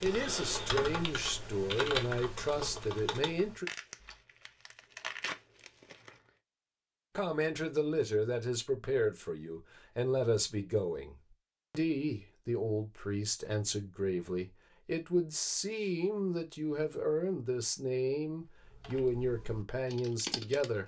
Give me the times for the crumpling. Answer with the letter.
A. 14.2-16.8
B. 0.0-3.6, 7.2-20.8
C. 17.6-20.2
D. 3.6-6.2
D.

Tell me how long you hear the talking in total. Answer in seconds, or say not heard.
17 s.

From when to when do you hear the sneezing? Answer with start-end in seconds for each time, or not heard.
not heard.